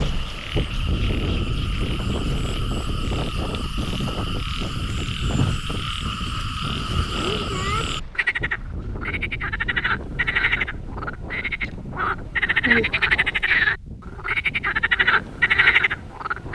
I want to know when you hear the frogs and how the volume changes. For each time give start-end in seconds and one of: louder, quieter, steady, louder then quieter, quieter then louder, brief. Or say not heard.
0.0-16.5 louder.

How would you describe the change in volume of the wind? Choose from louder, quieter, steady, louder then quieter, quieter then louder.
quieter.